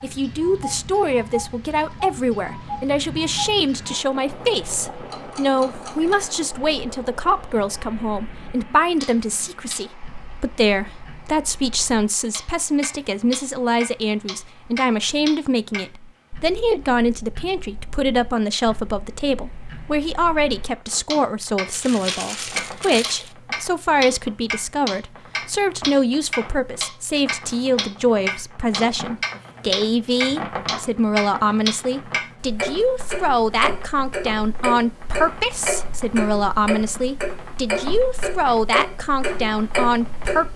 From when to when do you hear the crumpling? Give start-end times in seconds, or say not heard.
21.7-23.4.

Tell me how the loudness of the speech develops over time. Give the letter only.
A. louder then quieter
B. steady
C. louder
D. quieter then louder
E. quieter
B.